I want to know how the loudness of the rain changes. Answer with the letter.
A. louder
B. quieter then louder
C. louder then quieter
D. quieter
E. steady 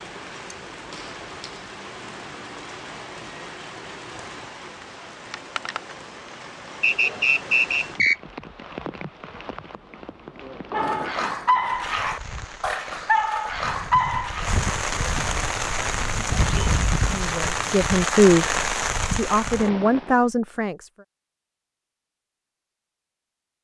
A.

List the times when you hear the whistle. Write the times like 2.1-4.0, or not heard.
6.8-8.2.